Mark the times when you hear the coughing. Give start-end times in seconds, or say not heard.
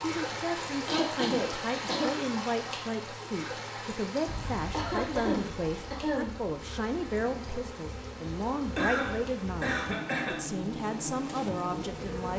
0.8-2.1, 4.7-6.3, 8.8-10.4.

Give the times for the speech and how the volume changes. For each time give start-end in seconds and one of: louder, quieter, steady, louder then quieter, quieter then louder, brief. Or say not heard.
0.0-12.3 steady.